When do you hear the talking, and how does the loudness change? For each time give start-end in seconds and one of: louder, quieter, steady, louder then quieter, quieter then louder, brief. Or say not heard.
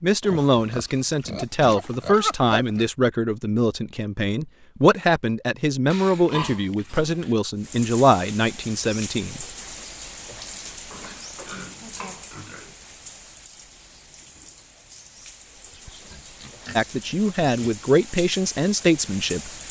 0.0-9.4 steady
16.8-19.5 brief.